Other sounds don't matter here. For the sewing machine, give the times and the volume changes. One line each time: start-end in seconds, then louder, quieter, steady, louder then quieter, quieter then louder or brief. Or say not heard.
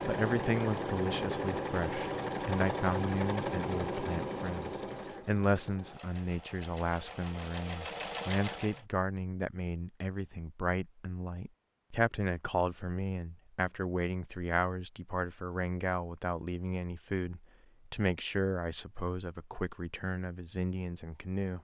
0.0-8.8 quieter then louder.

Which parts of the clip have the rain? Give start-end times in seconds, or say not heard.
not heard.